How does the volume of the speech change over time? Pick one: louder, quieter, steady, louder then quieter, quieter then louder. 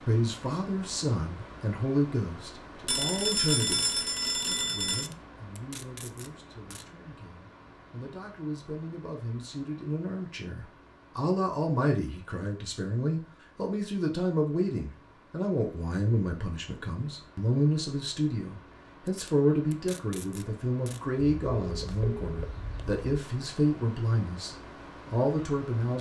quieter then louder.